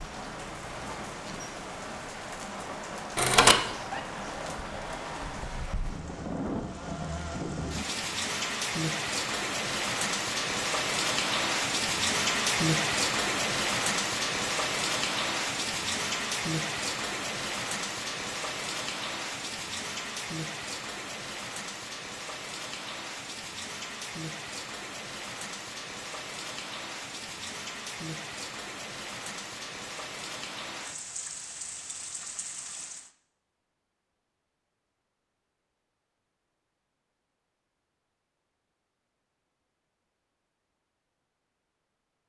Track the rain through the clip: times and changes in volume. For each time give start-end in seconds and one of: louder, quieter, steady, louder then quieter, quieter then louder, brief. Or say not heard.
0.0-33.1 louder then quieter.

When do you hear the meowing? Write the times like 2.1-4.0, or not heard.
3.1-4.0.